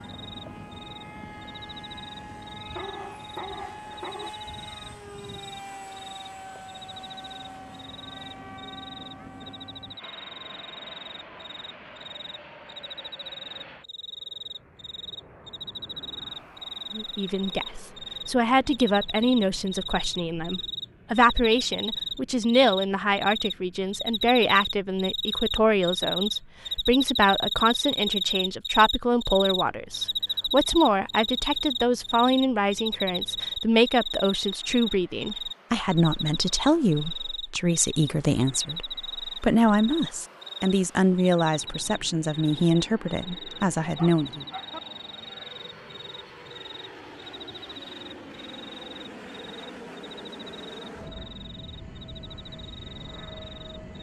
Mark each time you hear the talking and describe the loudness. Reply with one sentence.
The talking can be heard from 16.9 to 44.5 s, at a steady volume.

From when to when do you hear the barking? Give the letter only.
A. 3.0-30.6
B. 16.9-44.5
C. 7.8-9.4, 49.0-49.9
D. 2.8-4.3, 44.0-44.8
D.